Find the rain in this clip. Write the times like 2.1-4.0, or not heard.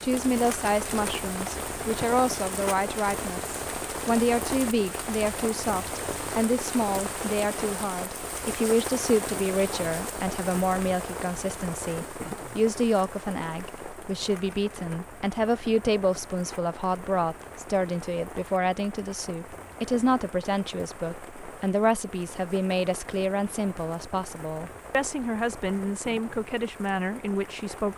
0.0-27.9.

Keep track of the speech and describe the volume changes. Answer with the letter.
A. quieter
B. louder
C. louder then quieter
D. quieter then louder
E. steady
E.